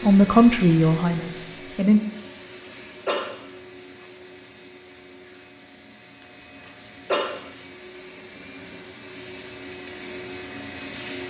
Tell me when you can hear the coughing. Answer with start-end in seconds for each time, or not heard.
2.6-3.3, 6.6-7.3.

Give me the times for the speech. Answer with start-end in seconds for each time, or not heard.
0.0-2.0.